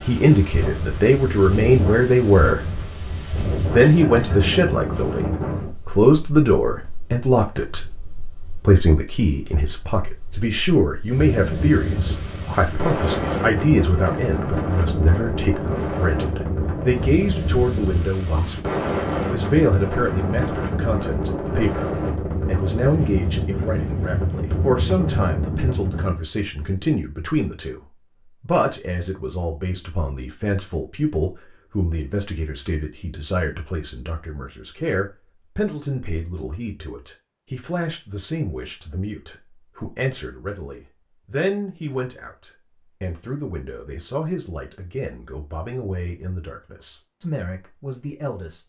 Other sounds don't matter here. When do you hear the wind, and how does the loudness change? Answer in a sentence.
The wind can be heard from 0.0 to 26.2 s, getting quieter then louder.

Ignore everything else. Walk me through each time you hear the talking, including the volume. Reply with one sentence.
The talking can be heard briefly from 0.0 to 2.6 s; and from 3.7 to 48.6 s, getting quieter.